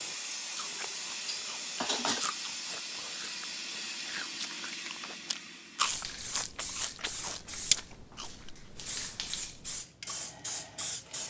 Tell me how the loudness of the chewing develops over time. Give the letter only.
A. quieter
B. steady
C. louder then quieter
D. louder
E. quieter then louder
C.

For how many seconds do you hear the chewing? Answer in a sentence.
The chewing can be heard for 8 seconds in total.